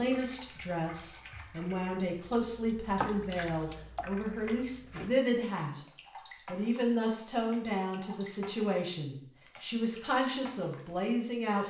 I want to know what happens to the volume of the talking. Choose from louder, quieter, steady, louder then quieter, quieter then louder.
steady.